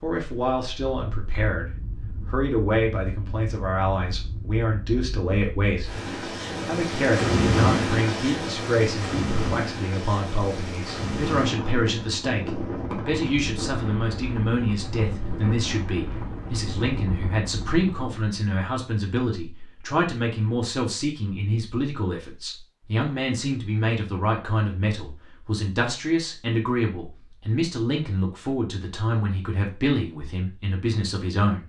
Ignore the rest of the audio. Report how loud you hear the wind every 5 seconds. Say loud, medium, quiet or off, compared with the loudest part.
quiet, loud, medium, medium, off, off, off.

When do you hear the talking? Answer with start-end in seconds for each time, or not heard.
0.0-6.0, 6.7-31.6.